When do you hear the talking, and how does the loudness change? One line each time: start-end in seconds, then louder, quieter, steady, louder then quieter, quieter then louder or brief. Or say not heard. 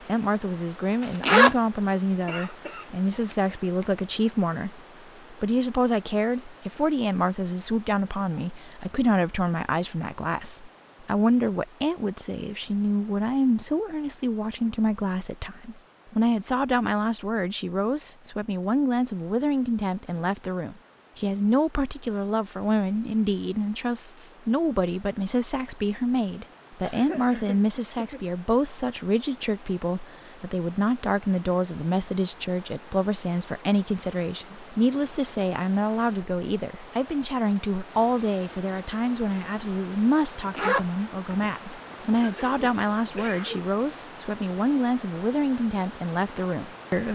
0.1-47.1 steady.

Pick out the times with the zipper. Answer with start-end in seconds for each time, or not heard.
1.0-1.6, 40.4-42.2.